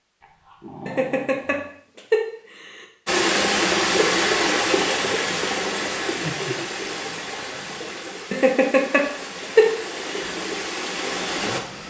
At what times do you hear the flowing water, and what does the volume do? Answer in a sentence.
You can hear the flowing water from 3.0 to 11.8 s, getting quieter then louder.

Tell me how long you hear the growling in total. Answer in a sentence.
The growling can be heard for 3 seconds in total.